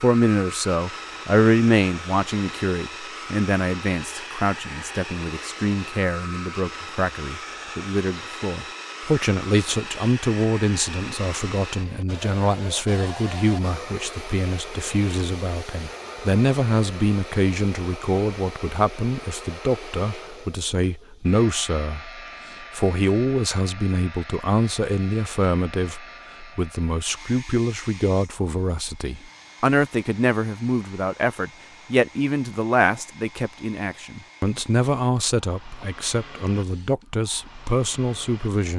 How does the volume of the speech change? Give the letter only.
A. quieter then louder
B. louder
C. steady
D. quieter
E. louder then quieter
C.